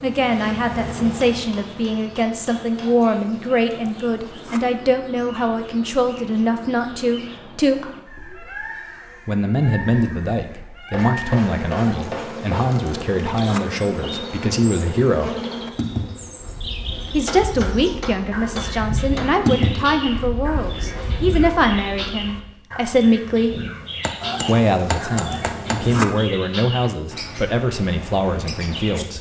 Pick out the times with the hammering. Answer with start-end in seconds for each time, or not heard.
1.3-2.9, 10.9-12.7, 17.2-19.4, 24.0-25.8.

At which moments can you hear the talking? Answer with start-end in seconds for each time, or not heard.
0.0-7.9, 9.2-15.3, 17.1-23.6, 24.4-29.1.